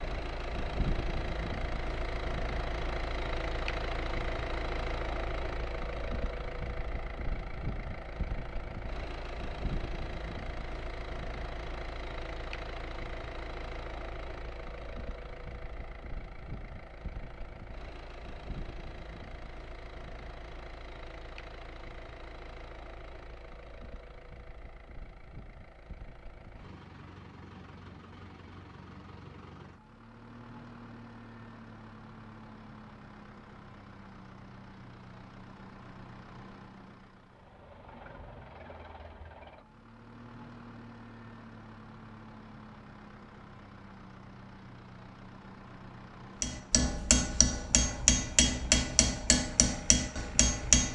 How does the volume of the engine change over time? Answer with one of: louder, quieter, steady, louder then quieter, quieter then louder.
quieter.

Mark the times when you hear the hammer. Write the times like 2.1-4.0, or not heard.
46.4-50.9.